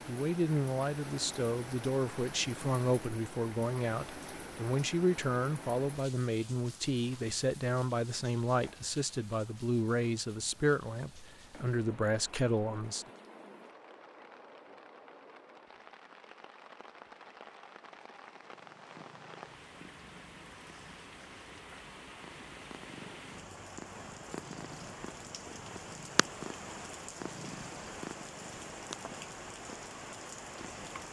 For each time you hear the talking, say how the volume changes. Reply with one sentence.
You can hear the talking from 0.1 to 13.1 s, at a steady volume.